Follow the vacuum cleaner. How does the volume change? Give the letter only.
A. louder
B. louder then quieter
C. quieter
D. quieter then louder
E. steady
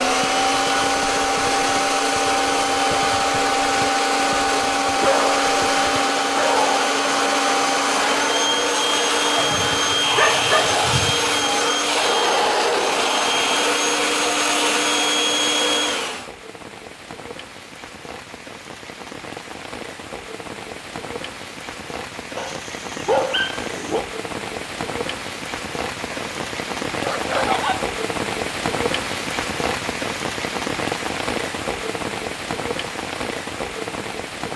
E.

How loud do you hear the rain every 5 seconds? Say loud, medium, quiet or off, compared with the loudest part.
quiet, quiet, quiet, medium, medium, loud, loud.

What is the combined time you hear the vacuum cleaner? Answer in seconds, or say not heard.
16 s.